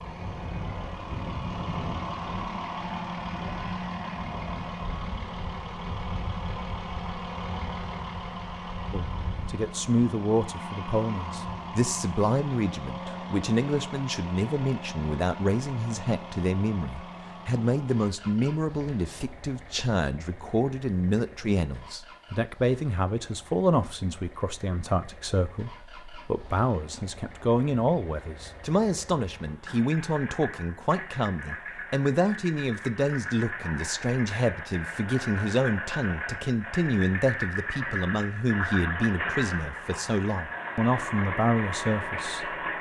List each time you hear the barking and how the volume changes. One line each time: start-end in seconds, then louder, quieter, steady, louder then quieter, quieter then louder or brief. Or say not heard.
not heard.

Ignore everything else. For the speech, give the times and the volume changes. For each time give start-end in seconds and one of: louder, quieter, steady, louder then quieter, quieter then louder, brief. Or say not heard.
8.9-42.5 steady.